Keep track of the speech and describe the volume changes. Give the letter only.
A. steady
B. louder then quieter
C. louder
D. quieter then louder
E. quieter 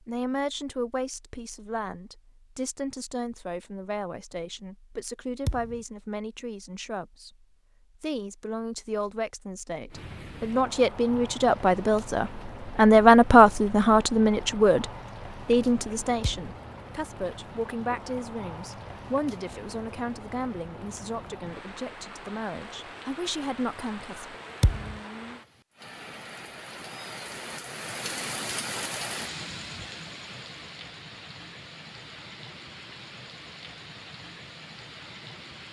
B.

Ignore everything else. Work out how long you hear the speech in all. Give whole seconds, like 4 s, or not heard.
24 s.